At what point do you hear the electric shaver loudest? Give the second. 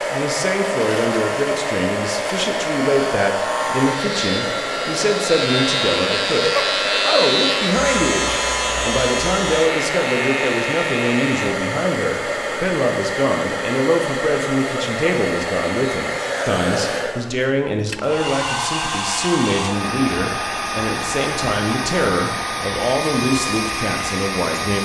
7 s.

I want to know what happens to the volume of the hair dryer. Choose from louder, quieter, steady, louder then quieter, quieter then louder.
steady.